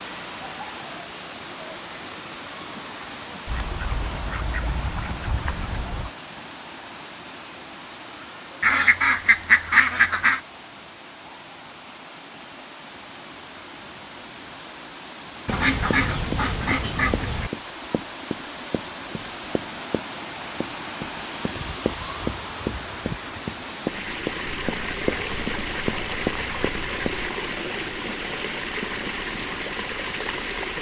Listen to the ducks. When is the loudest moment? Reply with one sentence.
The volume of the ducks peaks at 10 seconds.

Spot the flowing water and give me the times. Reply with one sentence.
You can hear the flowing water from 0.0 to 30.7 s.